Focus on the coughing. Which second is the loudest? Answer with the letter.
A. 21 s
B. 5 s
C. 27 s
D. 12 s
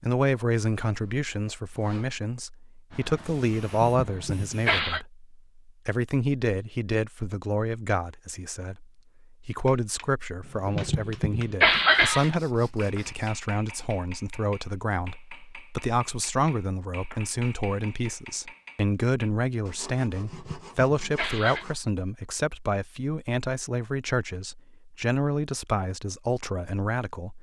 D.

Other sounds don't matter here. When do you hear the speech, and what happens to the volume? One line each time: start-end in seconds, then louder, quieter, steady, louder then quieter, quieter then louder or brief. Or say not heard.
0.0-27.3 steady.